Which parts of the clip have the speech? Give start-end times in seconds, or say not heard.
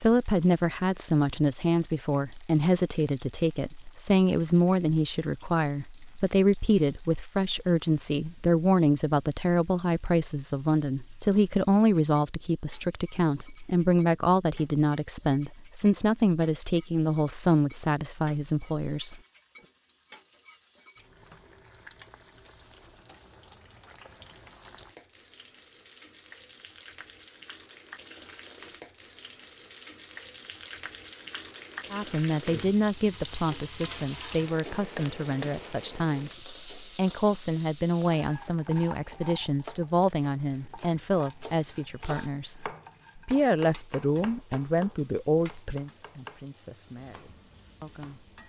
0.0-19.1, 31.9-48.3.